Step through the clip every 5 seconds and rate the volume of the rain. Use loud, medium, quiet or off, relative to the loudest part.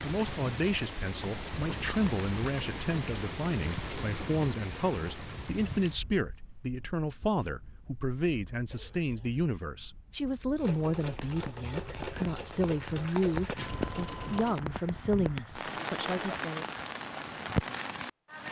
loud, quiet, medium, loud.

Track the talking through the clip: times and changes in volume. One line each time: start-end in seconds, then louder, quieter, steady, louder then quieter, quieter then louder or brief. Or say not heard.
0.0-16.7 steady.